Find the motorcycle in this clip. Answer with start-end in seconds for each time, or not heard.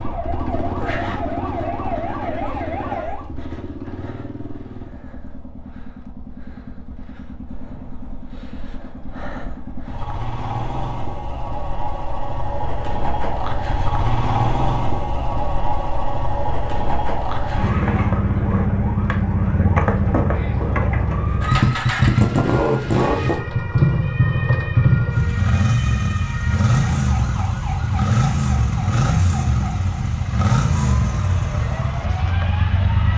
0.0-33.1.